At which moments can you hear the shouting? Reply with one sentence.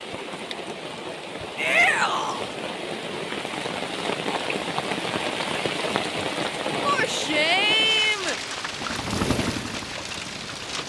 You can hear the shouting from 1.6 to 2.4 s and from 6.8 to 8.3 s.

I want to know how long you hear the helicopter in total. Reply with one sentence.
You can hear the helicopter for 2 seconds altogether.